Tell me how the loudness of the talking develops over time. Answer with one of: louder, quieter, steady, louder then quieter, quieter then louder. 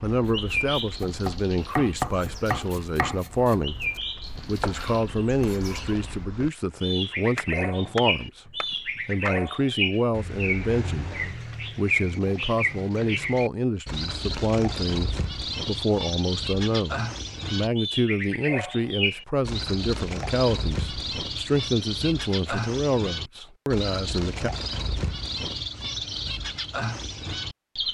steady.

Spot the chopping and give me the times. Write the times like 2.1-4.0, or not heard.
0.2-9.5.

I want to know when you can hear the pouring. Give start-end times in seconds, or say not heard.
not heard.